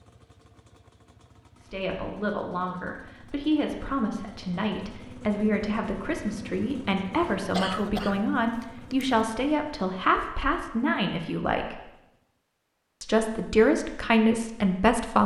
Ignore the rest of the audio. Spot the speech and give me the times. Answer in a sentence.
The speech can be heard from 1.6 to 11.8 s and from 13.0 to 15.2 s.